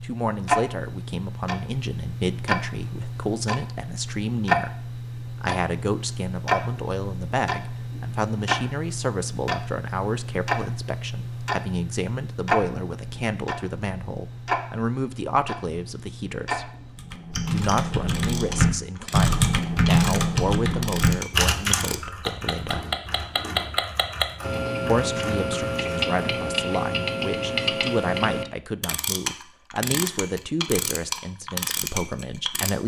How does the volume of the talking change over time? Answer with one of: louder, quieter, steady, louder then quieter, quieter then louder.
steady.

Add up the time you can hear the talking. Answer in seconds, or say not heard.
30 s.